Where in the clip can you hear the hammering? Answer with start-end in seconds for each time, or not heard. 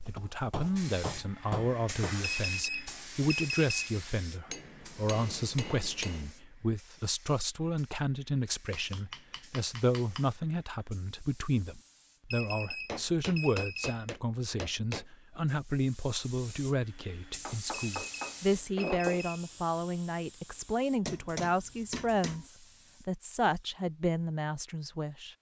0.1-2.2, 4.5-6.3, 8.7-10.2, 12.8-15.1, 17.4-19.2, 21.1-22.5.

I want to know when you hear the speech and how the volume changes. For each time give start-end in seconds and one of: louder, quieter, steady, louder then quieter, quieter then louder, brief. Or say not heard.
0.1-25.3 steady.